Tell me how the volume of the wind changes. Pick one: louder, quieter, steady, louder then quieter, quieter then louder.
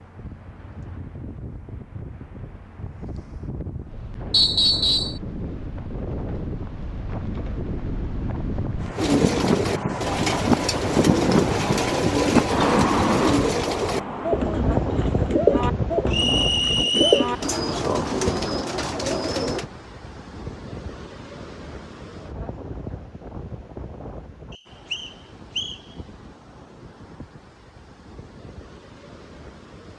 louder then quieter.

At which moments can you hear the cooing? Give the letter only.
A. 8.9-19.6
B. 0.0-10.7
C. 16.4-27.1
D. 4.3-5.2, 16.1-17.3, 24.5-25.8
A.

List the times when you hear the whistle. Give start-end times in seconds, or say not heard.
4.3-5.2, 16.1-17.3, 24.5-25.8.